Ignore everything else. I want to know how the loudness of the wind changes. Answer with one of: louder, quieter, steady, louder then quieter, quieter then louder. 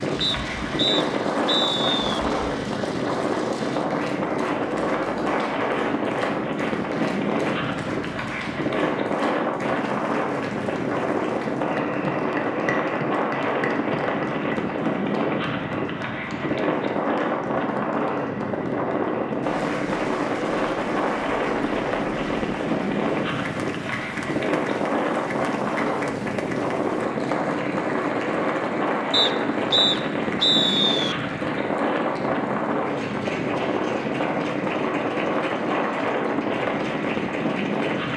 steady.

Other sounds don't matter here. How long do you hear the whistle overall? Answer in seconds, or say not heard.
4 s.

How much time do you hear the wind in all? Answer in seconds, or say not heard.
38 s.